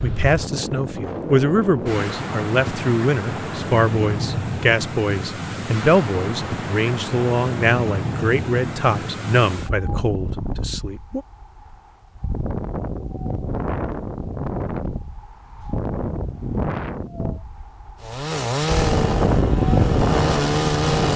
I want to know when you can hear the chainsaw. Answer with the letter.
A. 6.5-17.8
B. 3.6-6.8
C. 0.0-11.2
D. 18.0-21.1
D.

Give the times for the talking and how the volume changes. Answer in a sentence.
You can hear the talking from 0.0 to 11.2 s, at a steady volume.